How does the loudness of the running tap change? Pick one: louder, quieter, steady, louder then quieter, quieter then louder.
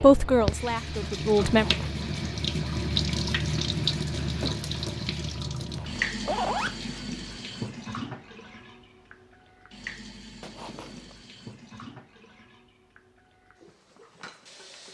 quieter.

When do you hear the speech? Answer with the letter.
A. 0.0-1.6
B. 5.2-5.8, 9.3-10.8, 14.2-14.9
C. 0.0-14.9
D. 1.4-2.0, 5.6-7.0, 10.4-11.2
A.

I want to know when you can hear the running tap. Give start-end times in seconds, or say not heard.
0.0-14.9.